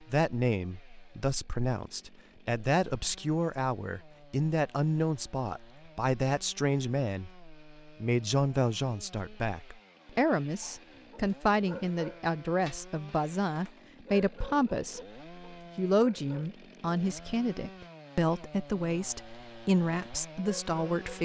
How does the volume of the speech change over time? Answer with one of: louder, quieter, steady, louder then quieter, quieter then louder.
steady.